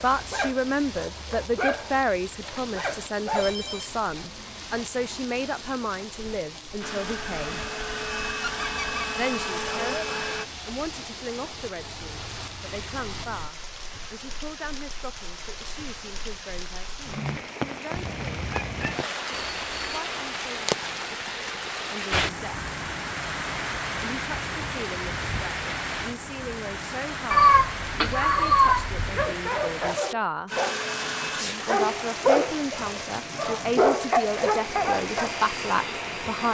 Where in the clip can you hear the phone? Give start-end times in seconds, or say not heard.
3.4-3.9, 19.4-20.1.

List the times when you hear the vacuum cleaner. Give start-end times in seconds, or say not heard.
6.8-10.4, 30.5-36.4.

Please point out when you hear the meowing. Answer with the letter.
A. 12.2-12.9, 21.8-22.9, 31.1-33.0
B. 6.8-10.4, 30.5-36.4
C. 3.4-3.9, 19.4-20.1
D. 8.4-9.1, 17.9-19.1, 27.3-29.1
D.